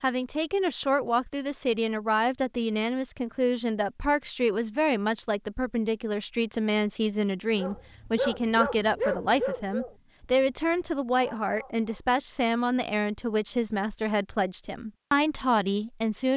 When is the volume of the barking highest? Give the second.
9 s.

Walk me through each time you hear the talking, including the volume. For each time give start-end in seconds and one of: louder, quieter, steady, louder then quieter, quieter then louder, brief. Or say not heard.
0.0-16.3 steady.